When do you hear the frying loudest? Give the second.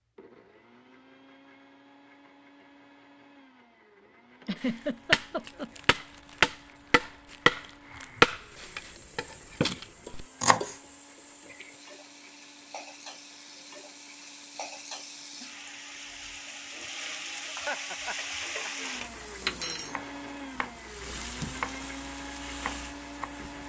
19 s.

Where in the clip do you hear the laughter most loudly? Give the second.
5 s.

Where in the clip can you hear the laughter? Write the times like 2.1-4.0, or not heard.
4.4-5.8, 17.4-18.9.